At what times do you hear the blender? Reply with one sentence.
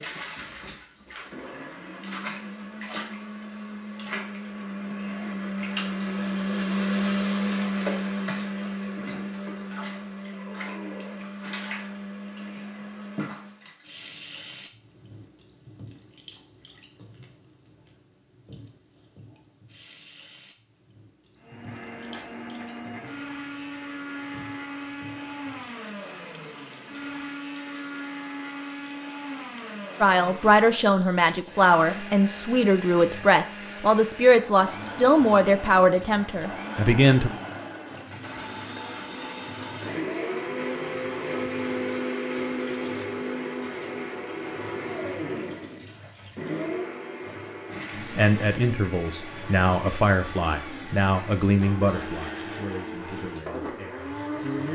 The blender can be heard from 0.1 to 13.7 s and from 21.4 to 54.7 s.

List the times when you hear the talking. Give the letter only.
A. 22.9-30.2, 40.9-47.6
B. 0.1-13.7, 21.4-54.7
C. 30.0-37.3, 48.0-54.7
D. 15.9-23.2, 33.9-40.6
C.